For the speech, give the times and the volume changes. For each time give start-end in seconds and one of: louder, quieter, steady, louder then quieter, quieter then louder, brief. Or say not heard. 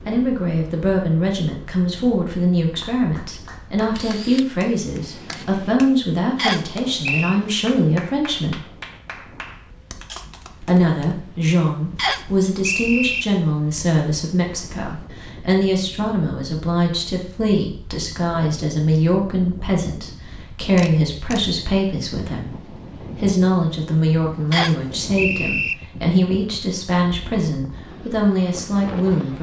0.1-8.7 steady
10.6-29.3 steady.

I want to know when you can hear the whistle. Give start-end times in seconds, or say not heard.
6.3-7.4, 11.9-13.2, 24.5-25.8.